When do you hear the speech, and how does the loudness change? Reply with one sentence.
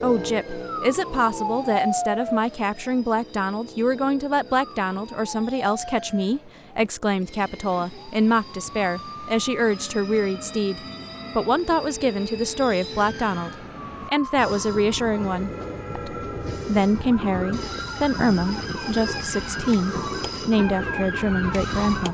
You can hear the speech from 0.0 to 22.0 s, at a steady volume.